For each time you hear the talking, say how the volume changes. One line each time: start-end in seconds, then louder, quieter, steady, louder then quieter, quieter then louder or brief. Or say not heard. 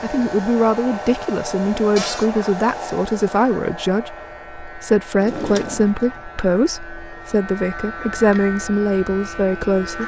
0.0-10.0 steady.